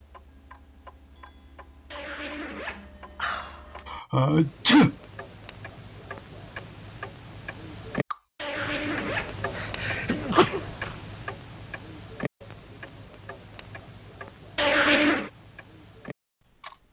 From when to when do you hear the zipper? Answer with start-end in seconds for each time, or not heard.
1.9-3.9, 8.3-9.3, 14.6-15.3.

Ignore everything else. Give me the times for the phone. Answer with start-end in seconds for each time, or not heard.
not heard.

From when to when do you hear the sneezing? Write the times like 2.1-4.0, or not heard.
3.9-5.0, 9.6-10.9.